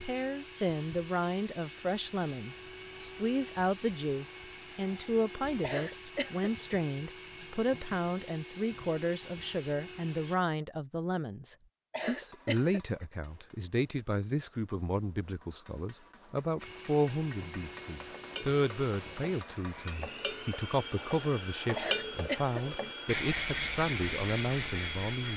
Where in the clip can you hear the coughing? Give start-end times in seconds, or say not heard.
5.6-6.5, 11.9-13.1, 21.8-22.9.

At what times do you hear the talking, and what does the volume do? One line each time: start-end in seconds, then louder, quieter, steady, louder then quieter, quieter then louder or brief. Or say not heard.
0.0-25.3 steady.